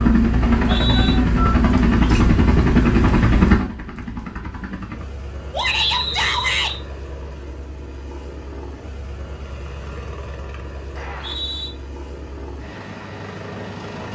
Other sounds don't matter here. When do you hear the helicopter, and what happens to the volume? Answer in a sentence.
The helicopter can be heard from 0.0 to 14.1 s, getting quieter.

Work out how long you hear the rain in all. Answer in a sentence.
The rain can't be heard in this clip.